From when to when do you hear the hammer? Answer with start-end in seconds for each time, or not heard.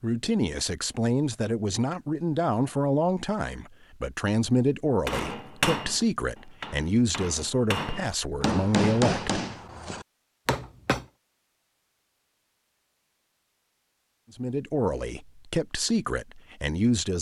5.0-11.1.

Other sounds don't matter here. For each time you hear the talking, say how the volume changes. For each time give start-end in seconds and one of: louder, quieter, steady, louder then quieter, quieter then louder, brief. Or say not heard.
0.0-9.4 steady
14.3-17.1 brief.